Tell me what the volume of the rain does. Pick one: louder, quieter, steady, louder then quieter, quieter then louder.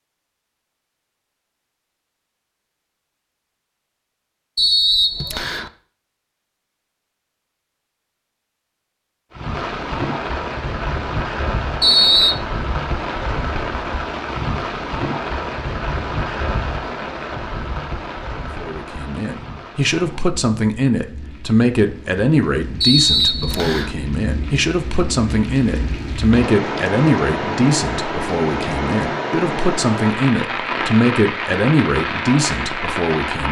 quieter then louder.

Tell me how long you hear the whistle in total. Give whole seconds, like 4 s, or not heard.
3 s.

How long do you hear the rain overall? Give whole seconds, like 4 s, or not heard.
24 s.